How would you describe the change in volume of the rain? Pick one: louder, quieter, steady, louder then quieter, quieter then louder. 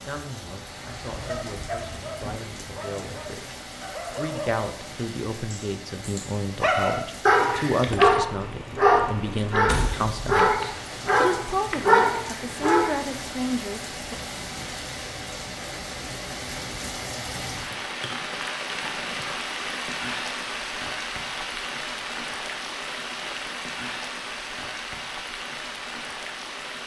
louder.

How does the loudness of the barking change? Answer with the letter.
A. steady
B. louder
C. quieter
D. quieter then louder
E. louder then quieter
B.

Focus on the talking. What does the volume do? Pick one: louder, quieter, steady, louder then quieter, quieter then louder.
louder.